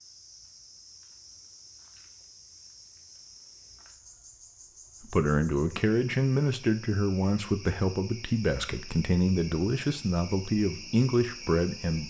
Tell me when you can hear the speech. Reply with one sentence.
The speech can be heard from 5.0 to 12.0 s.